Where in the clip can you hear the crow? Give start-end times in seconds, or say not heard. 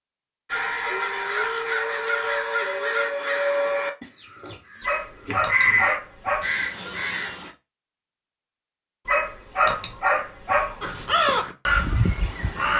0.5-7.5, 10.8-12.7.